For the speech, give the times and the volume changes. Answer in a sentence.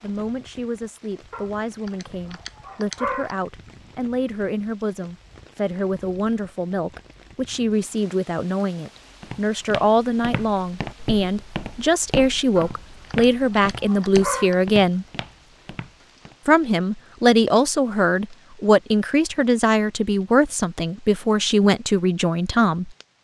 You can hear the speech from 0.0 to 15.1 s, getting louder; and from 16.4 to 22.9 s, at a steady volume.